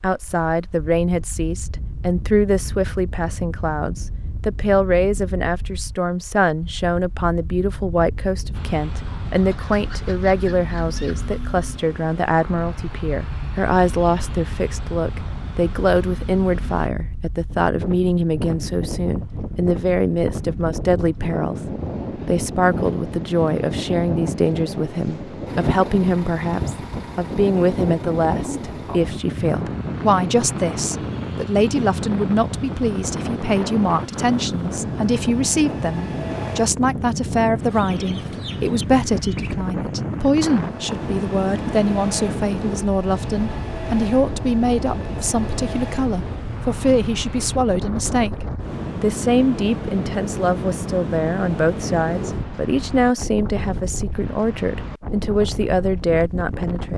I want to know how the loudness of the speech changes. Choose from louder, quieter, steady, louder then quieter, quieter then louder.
steady.